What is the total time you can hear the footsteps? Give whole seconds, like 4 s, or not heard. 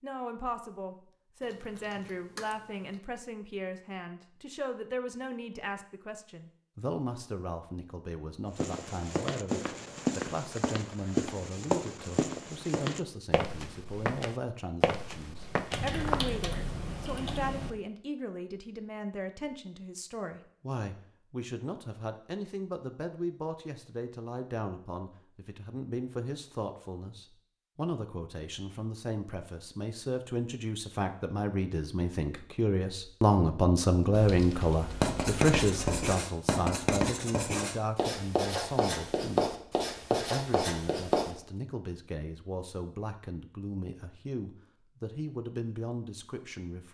8 s.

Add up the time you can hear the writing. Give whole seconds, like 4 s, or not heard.
6 s.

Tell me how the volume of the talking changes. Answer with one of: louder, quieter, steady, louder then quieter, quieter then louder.
louder then quieter.